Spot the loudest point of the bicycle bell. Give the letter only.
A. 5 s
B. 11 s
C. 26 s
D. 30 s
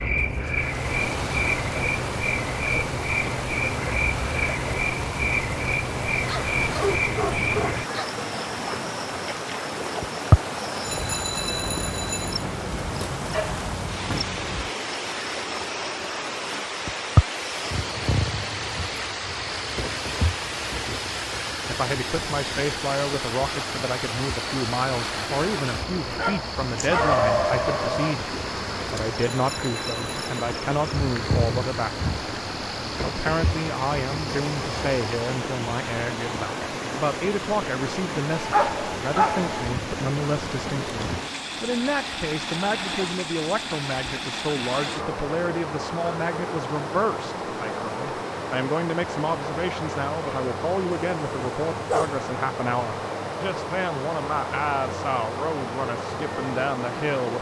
B.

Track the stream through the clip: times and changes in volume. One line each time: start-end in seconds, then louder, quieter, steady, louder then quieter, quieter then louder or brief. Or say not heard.
0.0-57.3 steady.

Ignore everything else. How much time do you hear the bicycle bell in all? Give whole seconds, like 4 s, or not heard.
3 s.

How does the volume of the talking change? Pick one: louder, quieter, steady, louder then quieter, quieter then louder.
steady.